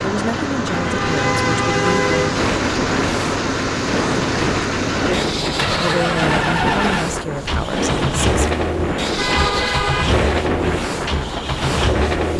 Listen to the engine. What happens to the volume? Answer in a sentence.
The volume of the engine stays about the same.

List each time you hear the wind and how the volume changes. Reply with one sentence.
The wind can be heard from 2.3 to 12.3 s, at a steady volume.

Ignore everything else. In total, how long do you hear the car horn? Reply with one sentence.
The car horn can be heard for 3 seconds in total.